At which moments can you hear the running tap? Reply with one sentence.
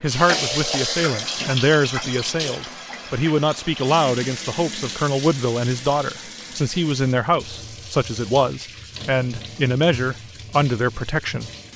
You can hear the running tap from 0.0 to 11.7 s.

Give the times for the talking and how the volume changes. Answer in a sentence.
The talking can be heard from 0.0 to 11.5 s, at a steady volume.